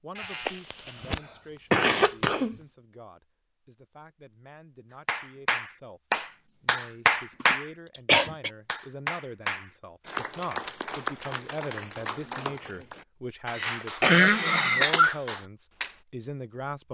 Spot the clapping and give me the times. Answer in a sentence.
You can hear the clapping from 5.0 to 15.9 s.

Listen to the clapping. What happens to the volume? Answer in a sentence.
The loudness of the clapping goes down.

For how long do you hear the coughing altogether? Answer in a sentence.
The coughing can be heard for 5 seconds in total.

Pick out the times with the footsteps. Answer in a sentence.
The footsteps can't be heard in this clip.